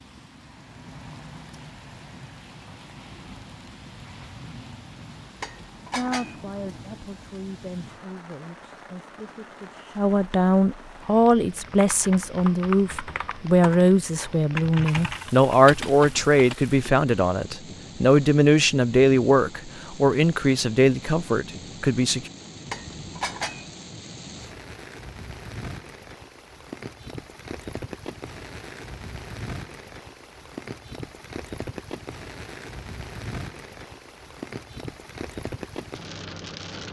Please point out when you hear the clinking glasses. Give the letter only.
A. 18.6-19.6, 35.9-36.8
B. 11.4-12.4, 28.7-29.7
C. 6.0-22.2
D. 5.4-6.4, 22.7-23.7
D.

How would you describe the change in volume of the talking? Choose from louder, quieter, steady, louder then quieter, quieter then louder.
louder.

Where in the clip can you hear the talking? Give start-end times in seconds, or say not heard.
6.0-22.2.